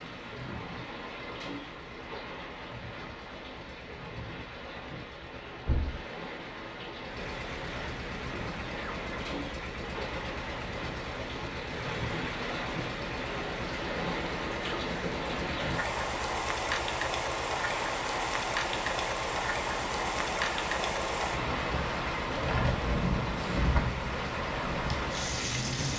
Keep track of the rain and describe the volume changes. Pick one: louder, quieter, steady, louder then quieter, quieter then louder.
louder.